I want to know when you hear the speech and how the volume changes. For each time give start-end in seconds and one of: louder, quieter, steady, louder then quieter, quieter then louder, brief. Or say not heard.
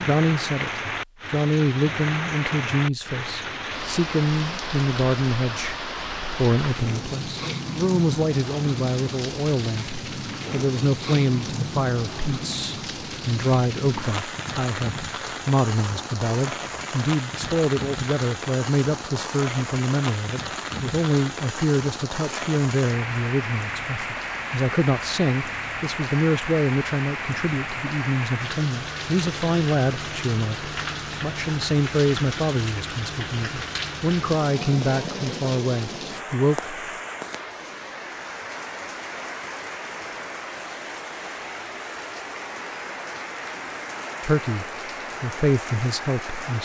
0.0-36.8 steady
44.2-46.6 brief.